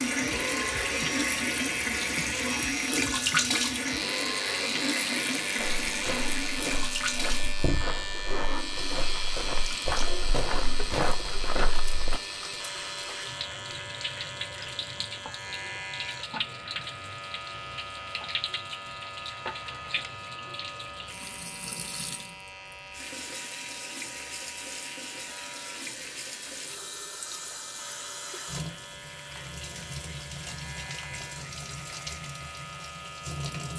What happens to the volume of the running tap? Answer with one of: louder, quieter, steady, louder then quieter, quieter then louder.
quieter.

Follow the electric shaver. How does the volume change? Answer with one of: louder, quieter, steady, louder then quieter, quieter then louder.
quieter.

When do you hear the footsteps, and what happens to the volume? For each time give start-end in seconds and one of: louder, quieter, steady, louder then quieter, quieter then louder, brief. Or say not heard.
5.5-12.2 louder.